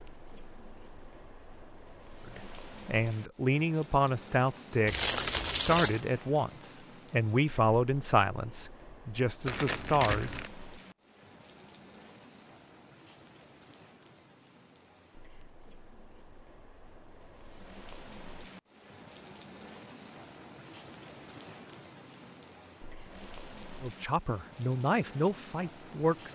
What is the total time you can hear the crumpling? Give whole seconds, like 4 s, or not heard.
3 s.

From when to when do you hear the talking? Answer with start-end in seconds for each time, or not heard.
2.2-10.4, 23.8-26.3.